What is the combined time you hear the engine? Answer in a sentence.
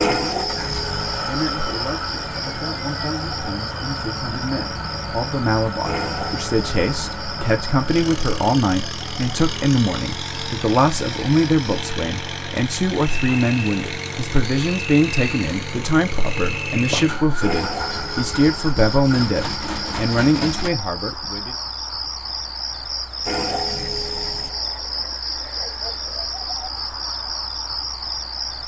The engine can be heard for 21 seconds in total.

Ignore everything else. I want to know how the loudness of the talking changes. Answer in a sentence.
The volume of the talking goes up.